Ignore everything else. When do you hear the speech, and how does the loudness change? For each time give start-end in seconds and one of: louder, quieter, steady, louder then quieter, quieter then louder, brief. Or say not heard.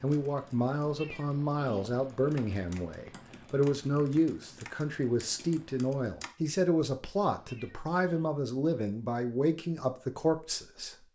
0.0-11.1 steady.